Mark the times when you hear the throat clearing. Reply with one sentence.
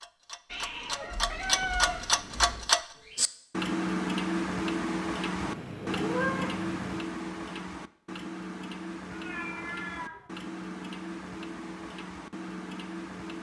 The throat clearing can't be heard in this clip.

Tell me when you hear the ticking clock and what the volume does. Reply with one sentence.
You can hear the ticking clock from 0.0 to 13.3 s, getting quieter.